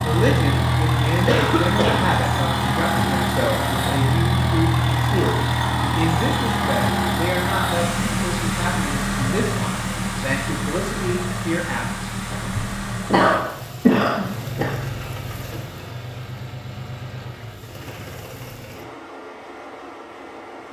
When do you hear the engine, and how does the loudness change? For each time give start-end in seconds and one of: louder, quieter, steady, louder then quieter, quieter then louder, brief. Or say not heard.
0.0-20.6 quieter.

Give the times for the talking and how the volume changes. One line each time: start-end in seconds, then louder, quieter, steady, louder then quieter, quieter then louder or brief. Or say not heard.
0.0-12.1 steady.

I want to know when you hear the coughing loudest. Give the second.
14 s.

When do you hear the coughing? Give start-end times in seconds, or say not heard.
1.2-2.0, 12.3-14.8.